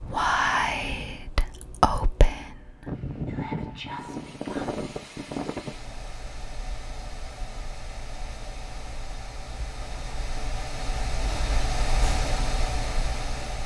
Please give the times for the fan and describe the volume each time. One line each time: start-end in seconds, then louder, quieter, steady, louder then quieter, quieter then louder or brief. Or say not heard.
2.9-13.6 quieter then louder.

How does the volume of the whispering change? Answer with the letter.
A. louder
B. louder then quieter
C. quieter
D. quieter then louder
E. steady
C.